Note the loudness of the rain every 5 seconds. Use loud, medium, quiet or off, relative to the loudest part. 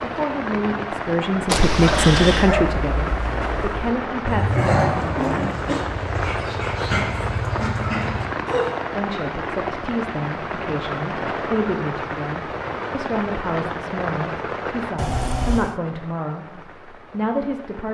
loud, loud, loud, quiet.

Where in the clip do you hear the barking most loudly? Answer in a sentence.
The volume of the barking peaks at 5 seconds.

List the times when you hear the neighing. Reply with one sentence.
You can hear the neighing from 1.4 to 2.5 s and from 14.9 to 15.8 s.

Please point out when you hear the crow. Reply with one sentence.
The crow can't be heard in this clip.